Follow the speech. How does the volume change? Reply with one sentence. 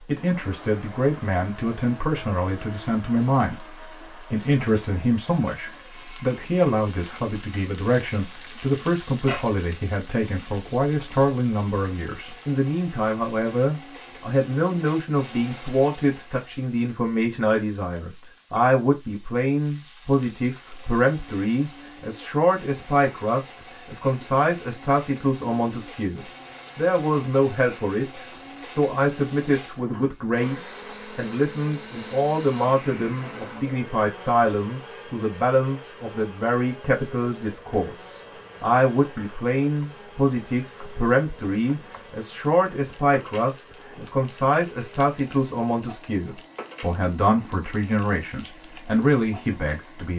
The volume of the speech stays about the same.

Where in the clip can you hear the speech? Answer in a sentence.
You can hear the speech from 0.1 to 50.1 s.